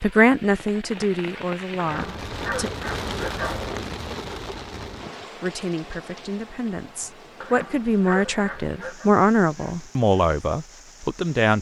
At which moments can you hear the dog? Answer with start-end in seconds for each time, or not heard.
1.8-3.8, 7.4-9.1.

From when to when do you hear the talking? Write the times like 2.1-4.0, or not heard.
0.0-2.7, 5.4-11.5.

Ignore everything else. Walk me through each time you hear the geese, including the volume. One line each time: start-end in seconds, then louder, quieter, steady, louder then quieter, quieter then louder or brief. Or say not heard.
not heard.